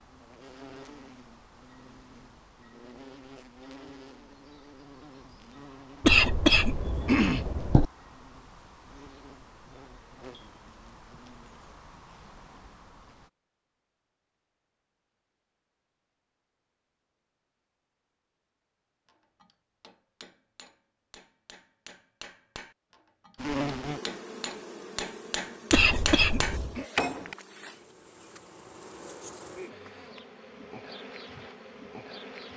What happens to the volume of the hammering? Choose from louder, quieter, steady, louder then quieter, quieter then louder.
louder.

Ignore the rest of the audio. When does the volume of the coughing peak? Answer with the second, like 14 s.
6 s.